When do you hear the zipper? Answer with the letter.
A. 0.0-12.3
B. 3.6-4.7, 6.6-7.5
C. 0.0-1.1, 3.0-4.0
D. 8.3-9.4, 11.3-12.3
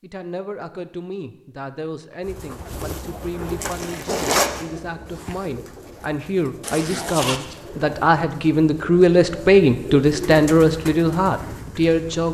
B.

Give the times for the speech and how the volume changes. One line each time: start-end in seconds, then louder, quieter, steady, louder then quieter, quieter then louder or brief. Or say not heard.
0.0-12.3 louder.